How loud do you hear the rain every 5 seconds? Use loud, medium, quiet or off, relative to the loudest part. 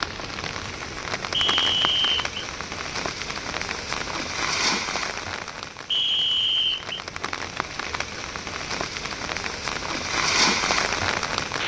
medium, medium, loud.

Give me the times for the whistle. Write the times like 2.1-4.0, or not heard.
1.3-2.2, 5.9-7.0.